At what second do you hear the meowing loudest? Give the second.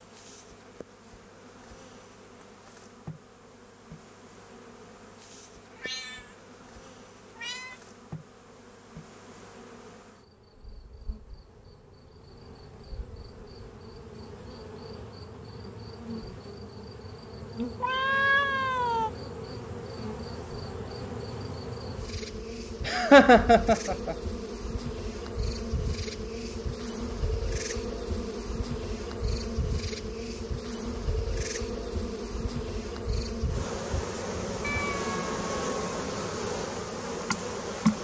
18 s.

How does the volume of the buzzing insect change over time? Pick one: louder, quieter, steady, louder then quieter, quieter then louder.
louder.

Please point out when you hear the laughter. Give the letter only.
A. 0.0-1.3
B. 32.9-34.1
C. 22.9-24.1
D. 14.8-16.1
C.